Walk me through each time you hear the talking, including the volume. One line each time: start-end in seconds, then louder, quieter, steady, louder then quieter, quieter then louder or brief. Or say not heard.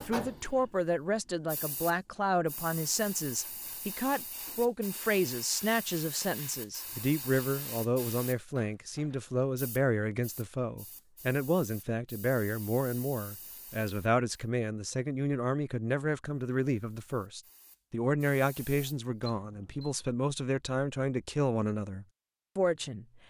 0.1-23.1 steady.